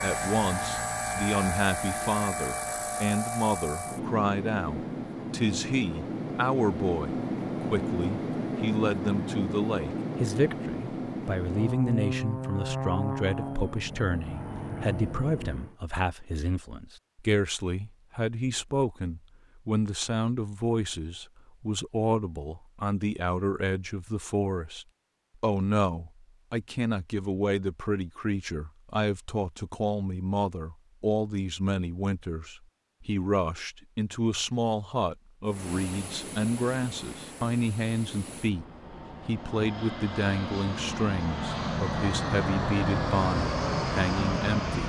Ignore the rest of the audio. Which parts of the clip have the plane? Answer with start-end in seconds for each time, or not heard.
0.0-15.8, 35.5-44.8.